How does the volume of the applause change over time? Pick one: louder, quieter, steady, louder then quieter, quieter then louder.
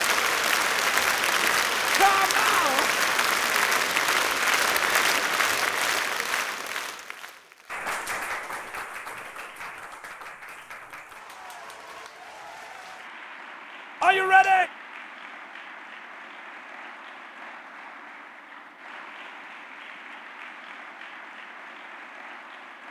quieter.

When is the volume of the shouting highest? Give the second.
14 s.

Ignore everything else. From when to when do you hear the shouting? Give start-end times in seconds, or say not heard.
1.9-2.9, 14.0-14.7.